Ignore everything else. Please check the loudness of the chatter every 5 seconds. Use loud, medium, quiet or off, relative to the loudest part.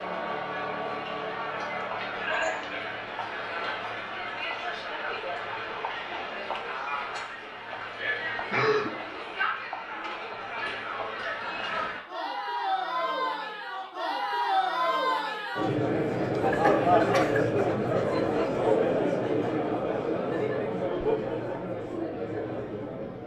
medium, medium, medium, loud, medium.